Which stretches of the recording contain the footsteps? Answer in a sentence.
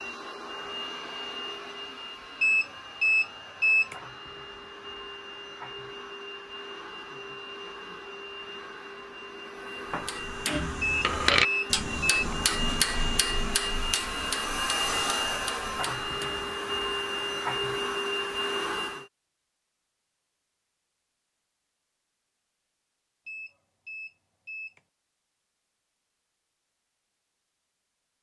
You can't hear the footsteps here.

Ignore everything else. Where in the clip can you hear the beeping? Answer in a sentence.
You can hear the beeping from 2.4 to 4.0 s, from 10.8 to 12.3 s and from 23.2 to 24.8 s.